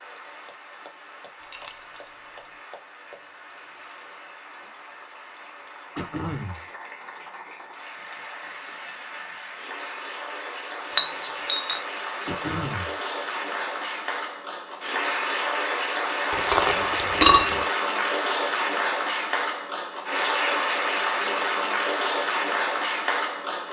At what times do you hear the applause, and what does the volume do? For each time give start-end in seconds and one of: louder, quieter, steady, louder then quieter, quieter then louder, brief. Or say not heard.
0.0-23.6 louder.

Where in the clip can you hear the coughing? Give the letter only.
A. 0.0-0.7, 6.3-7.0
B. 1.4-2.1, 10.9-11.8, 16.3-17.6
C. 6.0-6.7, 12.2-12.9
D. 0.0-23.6
C.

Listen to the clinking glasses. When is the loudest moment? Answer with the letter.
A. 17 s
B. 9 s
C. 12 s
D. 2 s
A.